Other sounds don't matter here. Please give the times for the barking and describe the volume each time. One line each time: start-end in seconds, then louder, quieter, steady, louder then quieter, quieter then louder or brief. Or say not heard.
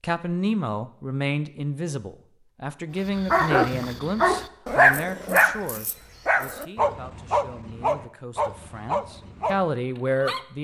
3.1-10.4 quieter.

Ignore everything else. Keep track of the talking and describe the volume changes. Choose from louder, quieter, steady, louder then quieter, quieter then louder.
quieter then louder.